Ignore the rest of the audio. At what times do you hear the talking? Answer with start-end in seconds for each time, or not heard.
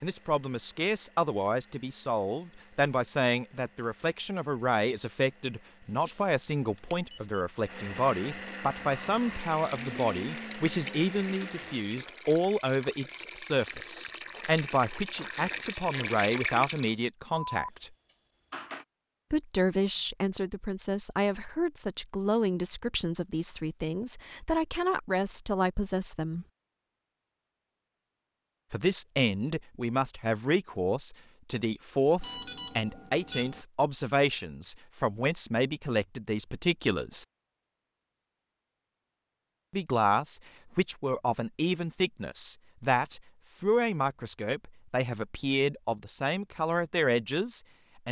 0.0-17.9, 19.3-26.4, 28.7-37.2, 39.7-48.0.